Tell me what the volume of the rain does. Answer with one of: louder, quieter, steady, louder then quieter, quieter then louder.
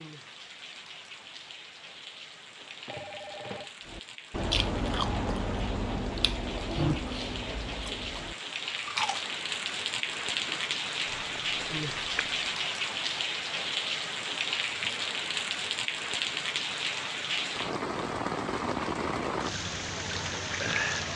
louder.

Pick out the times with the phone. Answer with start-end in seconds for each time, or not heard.
2.5-3.7.